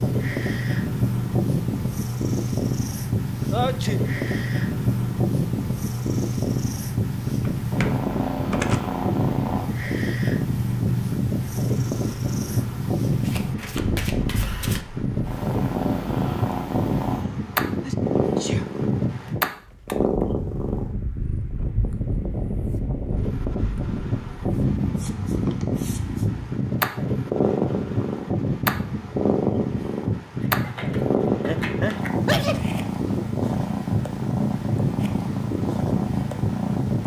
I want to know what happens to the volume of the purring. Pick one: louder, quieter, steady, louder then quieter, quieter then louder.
steady.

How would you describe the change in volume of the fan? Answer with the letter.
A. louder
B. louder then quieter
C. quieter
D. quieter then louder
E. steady
E.